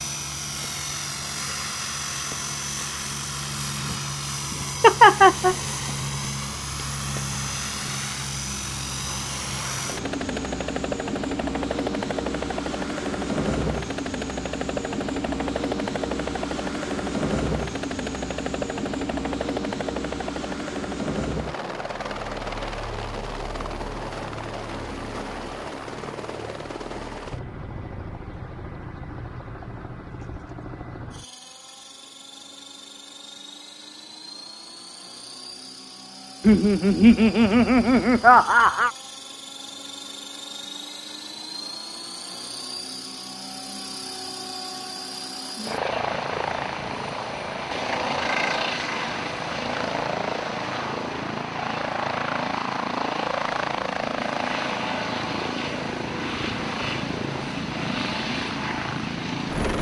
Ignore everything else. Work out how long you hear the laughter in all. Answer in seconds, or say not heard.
3 s.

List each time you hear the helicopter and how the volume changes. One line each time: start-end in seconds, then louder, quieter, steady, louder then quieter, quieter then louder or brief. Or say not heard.
0.0-59.7 quieter then louder.